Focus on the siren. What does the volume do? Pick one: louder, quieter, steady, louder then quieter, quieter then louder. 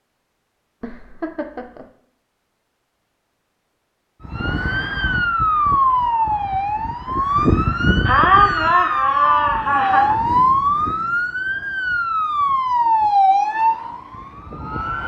steady.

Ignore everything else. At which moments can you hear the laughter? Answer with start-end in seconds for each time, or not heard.
0.8-1.9, 8.1-10.2.